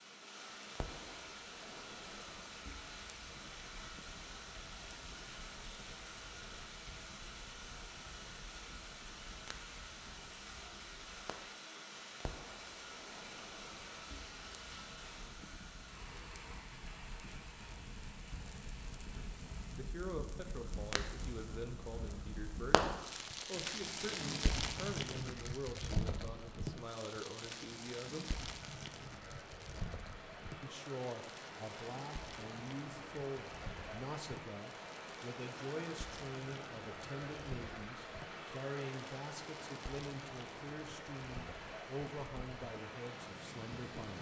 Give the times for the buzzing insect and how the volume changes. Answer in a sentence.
The buzzing insect can't be heard in this clip.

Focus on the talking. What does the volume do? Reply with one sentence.
The loudness of the talking stays about the same.